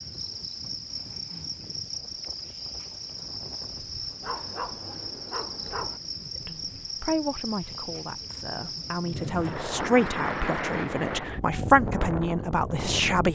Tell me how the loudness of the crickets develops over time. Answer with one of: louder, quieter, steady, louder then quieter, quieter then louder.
steady.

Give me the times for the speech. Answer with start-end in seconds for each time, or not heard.
6.5-13.2.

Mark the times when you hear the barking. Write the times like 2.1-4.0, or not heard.
4.2-6.0.